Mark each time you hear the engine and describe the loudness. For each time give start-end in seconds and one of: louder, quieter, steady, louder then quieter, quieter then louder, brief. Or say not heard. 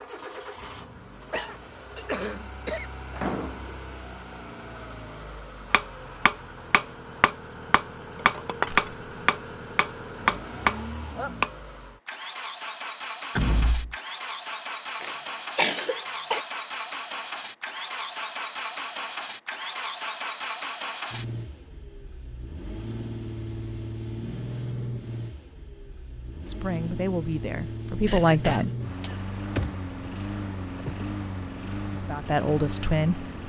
0.0-33.4 louder.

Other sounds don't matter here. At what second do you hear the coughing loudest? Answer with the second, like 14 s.
16 s.